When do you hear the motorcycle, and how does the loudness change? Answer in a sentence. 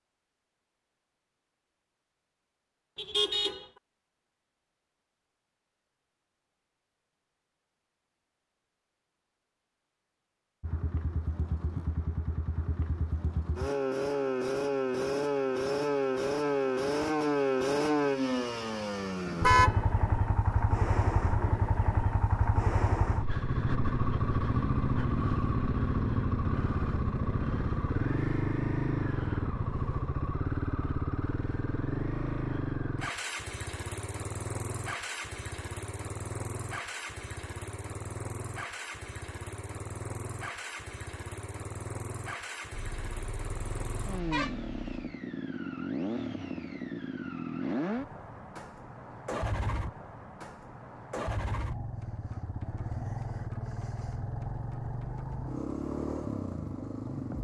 The motorcycle can be heard from 10.6 to 57.3 s, getting quieter.